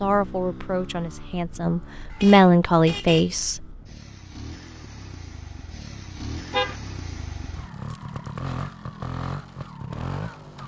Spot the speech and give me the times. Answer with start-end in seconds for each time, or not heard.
0.0-3.6.